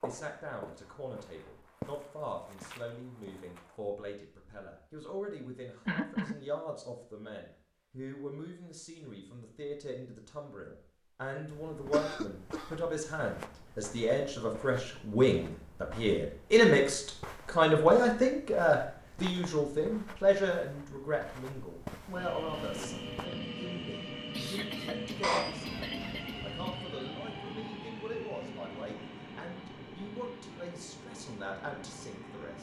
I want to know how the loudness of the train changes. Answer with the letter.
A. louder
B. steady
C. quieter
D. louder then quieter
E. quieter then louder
C.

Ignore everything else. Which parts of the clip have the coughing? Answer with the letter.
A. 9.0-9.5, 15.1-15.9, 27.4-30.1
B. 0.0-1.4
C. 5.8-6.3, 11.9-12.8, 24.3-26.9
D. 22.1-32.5
C.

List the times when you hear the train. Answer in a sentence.
You can hear the train from 22.1 to 32.5 s.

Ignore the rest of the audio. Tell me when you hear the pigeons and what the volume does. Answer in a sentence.
You can't hear the pigeons here.